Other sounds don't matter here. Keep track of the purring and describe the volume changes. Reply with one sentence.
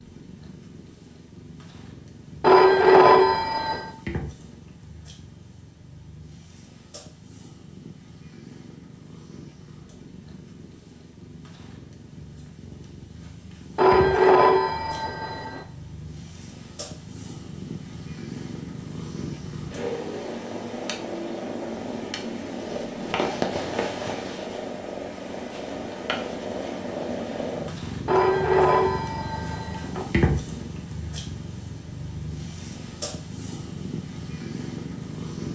The volume of the purring goes up.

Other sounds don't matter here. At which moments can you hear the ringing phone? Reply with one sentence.
The ringing phone can be heard from 2.4 to 3.9 s, from 13.8 to 15.7 s and from 28.1 to 30.1 s.